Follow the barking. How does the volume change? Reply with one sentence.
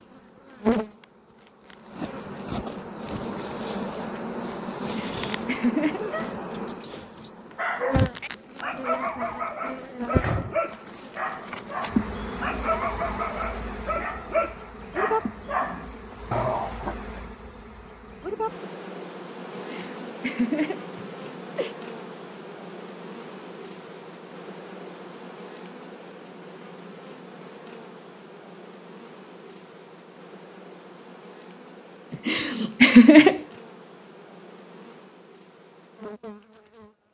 The volume of the barking stays about the same.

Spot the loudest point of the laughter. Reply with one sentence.
The volume of the laughter peaks at 33 seconds.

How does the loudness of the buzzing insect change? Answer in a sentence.
The loudness of the buzzing insect goes down.